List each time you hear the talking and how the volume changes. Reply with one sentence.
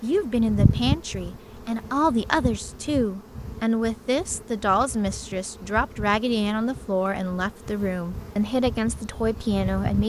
The talking can be heard from 0.0 to 10.0 s, at a steady volume.